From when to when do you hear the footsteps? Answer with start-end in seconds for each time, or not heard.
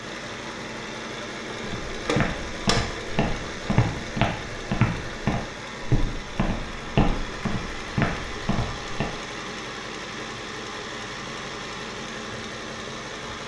1.6-9.1.